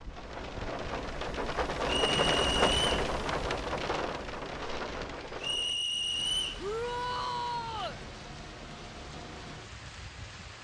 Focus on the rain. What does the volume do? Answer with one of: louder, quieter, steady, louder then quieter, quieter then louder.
quieter.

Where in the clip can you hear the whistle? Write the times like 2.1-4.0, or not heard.
1.9-2.9, 5.4-6.7.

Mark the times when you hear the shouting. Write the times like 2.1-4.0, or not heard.
6.6-8.0.